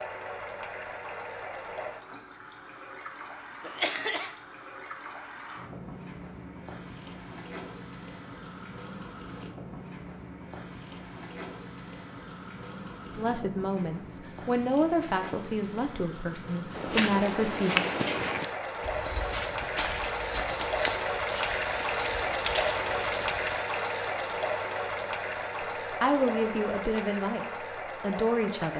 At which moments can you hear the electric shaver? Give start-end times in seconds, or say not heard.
not heard.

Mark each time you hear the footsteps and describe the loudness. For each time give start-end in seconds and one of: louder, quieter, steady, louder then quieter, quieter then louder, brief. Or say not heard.
16.8-23.6 quieter.